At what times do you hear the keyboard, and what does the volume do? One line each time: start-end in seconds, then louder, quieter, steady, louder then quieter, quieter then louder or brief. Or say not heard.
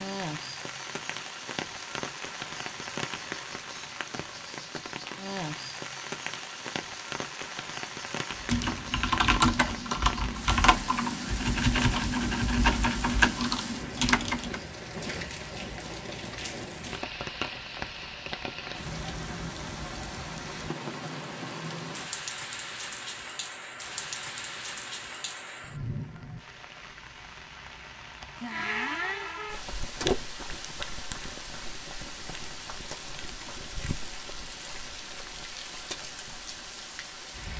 8.3-14.6 steady.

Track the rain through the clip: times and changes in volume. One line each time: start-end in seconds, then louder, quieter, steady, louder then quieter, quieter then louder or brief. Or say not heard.
0.0-37.5 steady.